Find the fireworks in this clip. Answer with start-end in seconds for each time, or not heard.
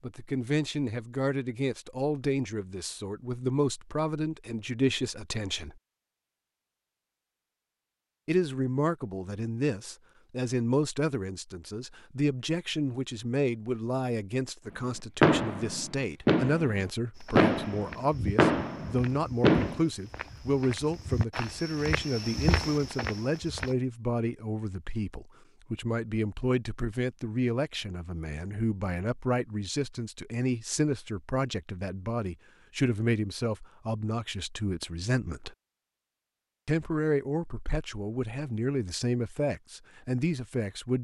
15.2-19.8.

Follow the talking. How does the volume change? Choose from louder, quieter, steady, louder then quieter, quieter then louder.
steady.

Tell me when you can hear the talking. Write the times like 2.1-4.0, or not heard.
0.0-5.8, 8.2-35.5, 36.6-40.9.